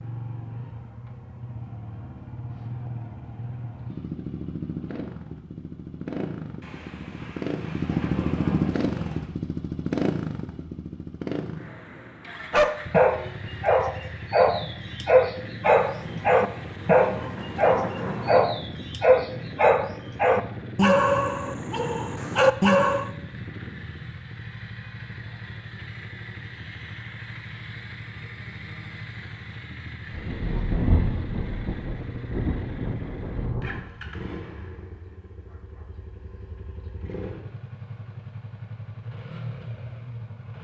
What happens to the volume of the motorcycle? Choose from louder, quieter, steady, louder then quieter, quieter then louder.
quieter.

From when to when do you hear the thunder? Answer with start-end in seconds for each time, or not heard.
6.6-9.3, 15.6-18.4, 30.1-33.9.